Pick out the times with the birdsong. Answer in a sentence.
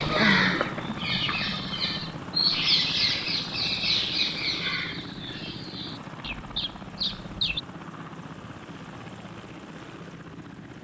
You can hear the birdsong from 0.0 to 7.6 s.